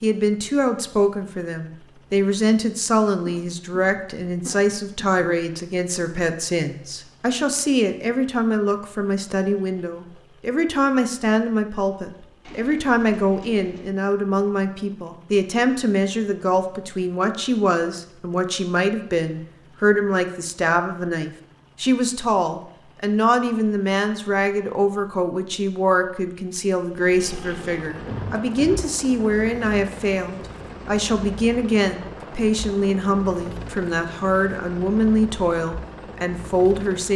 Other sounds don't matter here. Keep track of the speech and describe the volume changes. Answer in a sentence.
The volume of the speech stays about the same.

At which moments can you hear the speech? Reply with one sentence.
The speech can be heard from 0.0 to 37.1 s.